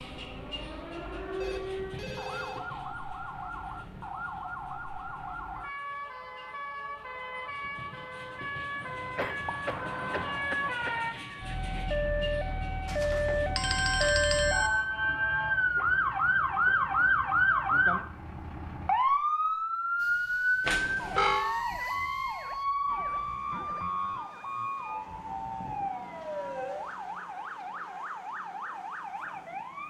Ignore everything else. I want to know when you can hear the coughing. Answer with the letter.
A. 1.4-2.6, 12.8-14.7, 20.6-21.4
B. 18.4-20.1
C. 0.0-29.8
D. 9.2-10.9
D.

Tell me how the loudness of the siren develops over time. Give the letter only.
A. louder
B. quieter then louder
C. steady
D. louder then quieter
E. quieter
D.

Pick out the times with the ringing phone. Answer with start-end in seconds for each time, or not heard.
1.4-2.6, 12.8-14.7, 20.6-21.4.